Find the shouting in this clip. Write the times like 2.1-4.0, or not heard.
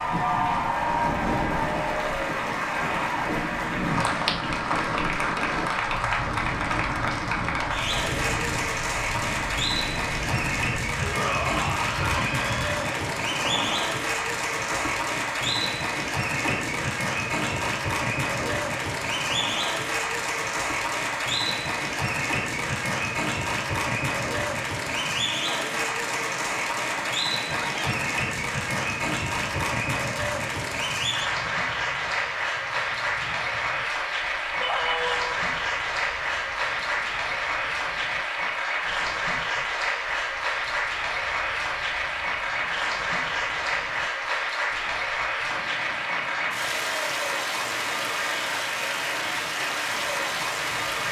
11.0-12.8, 27.6-28.0, 34.6-35.2.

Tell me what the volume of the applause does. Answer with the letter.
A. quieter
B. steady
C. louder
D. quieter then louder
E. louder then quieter
B.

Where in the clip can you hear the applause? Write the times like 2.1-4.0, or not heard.
0.0-51.0.